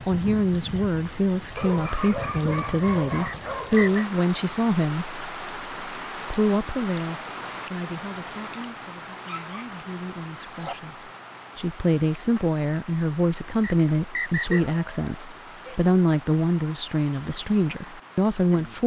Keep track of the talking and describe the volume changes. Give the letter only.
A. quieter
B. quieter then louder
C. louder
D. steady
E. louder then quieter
B.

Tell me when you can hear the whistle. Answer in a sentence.
The whistle can be heard from 3.2 to 4.0 s and from 13.6 to 14.6 s.